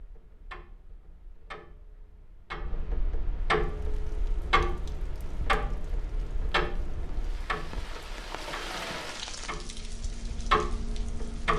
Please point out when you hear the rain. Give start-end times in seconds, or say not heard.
3.5-11.5.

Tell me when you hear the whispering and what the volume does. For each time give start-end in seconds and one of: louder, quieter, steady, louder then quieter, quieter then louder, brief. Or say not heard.
not heard.